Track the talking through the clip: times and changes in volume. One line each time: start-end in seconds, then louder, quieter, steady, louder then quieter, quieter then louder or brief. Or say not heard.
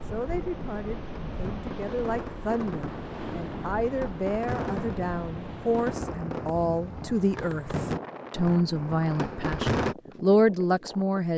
0.0-11.3 louder.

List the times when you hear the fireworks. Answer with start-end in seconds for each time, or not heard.
0.1-9.9.